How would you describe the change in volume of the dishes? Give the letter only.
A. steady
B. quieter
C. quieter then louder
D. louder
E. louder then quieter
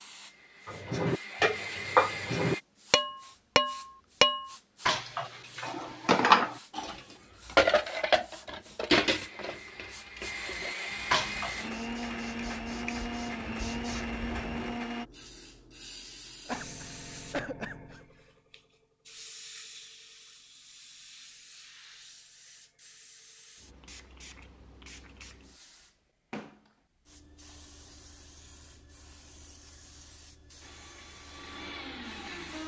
B.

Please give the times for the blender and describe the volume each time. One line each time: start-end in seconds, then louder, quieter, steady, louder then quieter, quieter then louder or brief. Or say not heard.
0.1-2.6 brief
9.1-15.1 louder
30.6-32.6 brief.